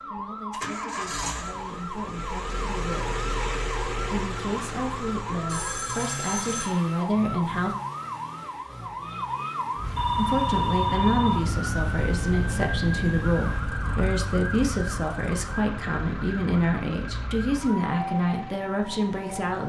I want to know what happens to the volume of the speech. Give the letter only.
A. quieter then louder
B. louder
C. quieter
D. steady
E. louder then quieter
B.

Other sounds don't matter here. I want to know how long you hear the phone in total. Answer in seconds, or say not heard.
3 s.